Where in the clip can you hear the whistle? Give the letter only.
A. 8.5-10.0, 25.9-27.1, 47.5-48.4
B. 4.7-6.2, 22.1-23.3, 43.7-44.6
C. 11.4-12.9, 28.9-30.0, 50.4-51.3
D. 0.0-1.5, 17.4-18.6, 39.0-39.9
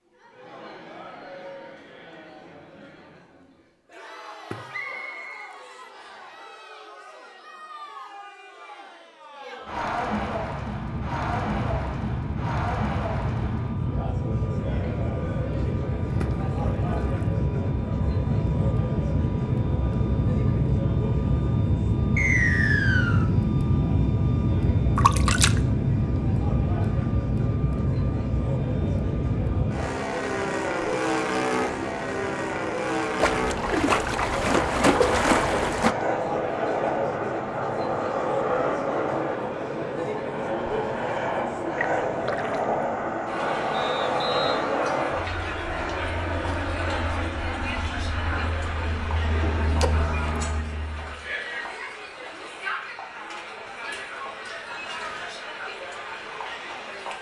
B.